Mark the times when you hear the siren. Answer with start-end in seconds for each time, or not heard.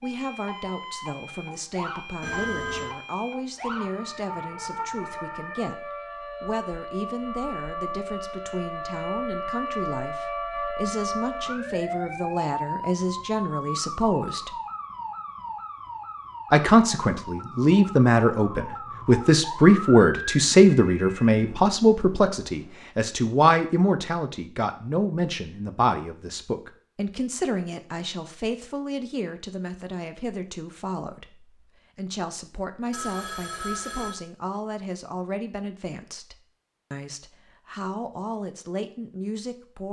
0.0-20.4.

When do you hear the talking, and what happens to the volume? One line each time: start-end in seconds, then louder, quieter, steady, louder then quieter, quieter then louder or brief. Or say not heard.
0.0-14.6 louder
16.5-39.8 quieter.